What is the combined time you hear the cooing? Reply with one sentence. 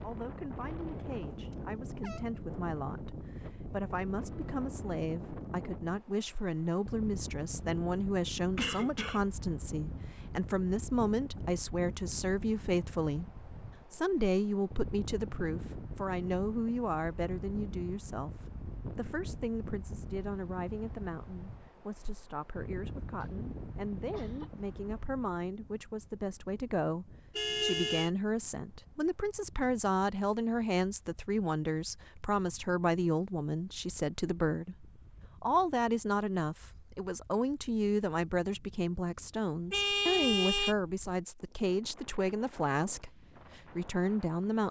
The cooing can't be heard in this clip.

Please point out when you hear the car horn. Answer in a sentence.
The car horn can be heard from 1.3 to 2.4 s, from 27.4 to 28.1 s and from 39.7 to 40.8 s.